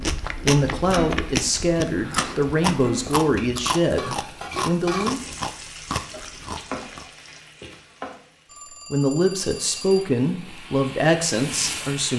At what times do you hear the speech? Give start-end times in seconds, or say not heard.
0.0-5.2, 8.9-12.1.